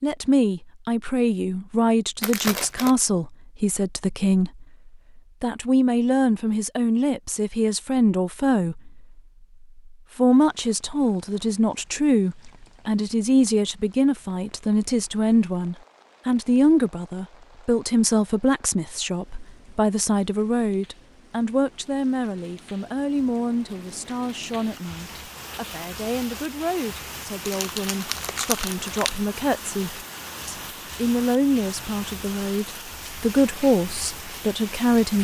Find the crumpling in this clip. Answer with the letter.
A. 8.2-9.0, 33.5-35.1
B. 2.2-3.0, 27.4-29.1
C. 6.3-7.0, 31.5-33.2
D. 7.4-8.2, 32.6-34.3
B.